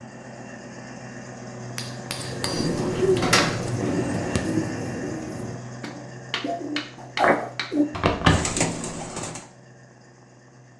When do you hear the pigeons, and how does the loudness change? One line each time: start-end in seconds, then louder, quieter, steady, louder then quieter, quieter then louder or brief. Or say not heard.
2.1-9.4 quieter then louder.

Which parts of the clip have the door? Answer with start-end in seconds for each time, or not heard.
2.5-3.7, 7.9-8.6.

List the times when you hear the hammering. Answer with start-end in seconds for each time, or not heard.
1.8-3.3, 5.8-7.8.